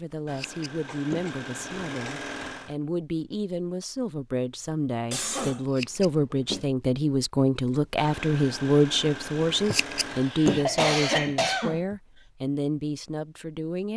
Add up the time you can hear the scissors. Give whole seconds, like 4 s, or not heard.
4 s.